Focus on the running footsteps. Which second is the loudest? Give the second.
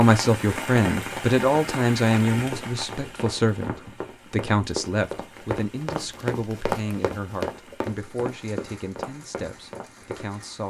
7 s.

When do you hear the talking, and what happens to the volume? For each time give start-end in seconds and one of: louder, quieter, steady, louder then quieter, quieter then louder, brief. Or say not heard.
0.0-10.6 quieter.